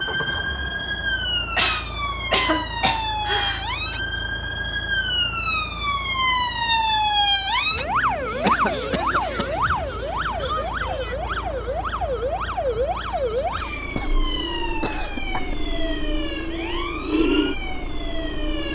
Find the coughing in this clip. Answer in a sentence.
You can hear the coughing from 1.6 to 3.6 s, from 8.4 to 9.4 s and from 13.9 to 15.7 s.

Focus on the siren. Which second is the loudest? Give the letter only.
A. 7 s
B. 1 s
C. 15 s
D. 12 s
A.